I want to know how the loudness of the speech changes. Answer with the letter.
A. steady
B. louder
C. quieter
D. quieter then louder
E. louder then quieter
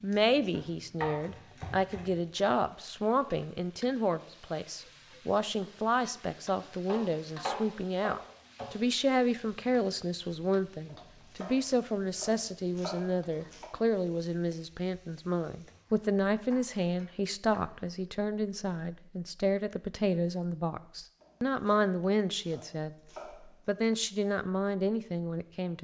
A.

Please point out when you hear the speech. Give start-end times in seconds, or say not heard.
0.0-25.7.